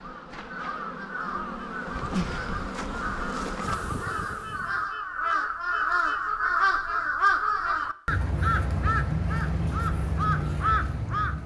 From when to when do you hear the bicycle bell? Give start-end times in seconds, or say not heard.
not heard.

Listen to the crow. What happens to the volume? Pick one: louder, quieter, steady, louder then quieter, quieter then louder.
louder.